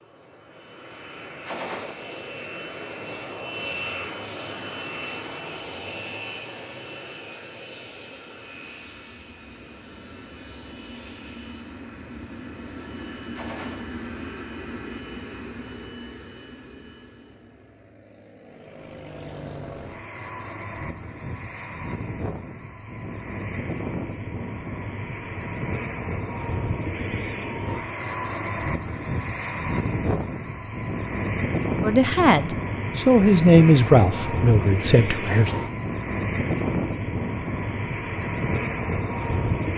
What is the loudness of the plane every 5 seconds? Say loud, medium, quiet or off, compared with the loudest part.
medium, medium, medium, quiet, medium, loud, loud, loud.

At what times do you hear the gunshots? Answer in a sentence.
You can hear the gunshots from 1.4 to 1.9 s, from 13.3 to 13.8 s and from 35.2 to 35.7 s.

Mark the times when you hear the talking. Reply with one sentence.
You can hear the talking from 31.8 to 35.5 s.